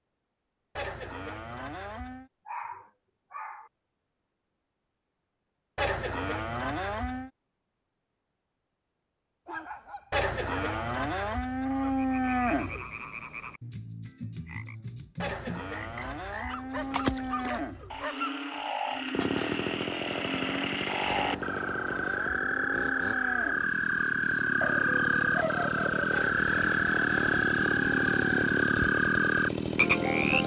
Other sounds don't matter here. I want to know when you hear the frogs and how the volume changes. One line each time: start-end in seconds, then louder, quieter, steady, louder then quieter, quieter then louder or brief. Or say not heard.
11.9-30.4 louder.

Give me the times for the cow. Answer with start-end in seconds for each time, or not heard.
0.8-2.3, 5.8-7.3, 10.1-12.9, 15.2-18.1, 21.1-23.6, 26.1-28.4.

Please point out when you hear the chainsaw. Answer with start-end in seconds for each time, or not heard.
19.1-30.4.